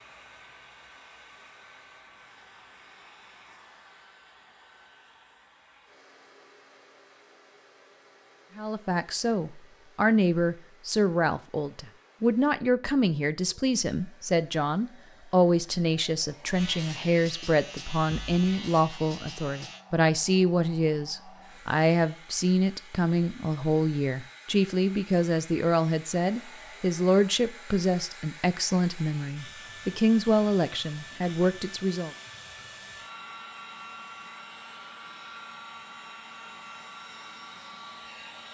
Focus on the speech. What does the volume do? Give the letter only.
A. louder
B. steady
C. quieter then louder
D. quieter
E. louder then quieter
B.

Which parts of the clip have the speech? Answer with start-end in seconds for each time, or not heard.
8.6-32.1.